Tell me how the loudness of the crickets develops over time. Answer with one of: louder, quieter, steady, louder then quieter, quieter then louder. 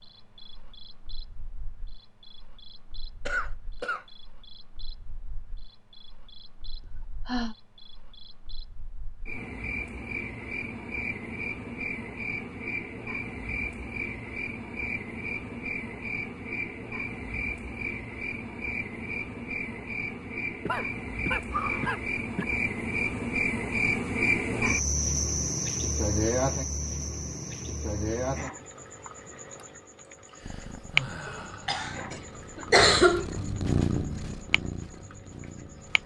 louder then quieter.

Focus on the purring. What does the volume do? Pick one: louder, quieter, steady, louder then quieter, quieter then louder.
louder then quieter.